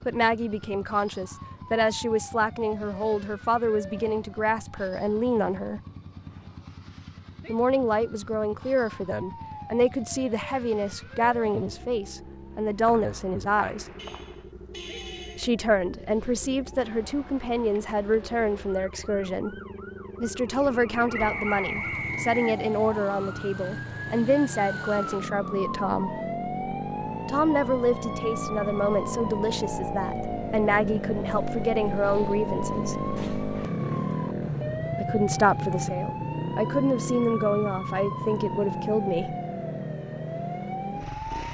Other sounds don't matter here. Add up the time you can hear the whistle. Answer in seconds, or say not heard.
3 s.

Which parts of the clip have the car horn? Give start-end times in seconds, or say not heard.
13.9-15.5.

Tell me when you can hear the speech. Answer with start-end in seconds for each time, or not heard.
0.1-5.8, 7.5-13.8, 15.3-19.6, 20.2-26.1, 27.2-33.0, 35.0-39.4.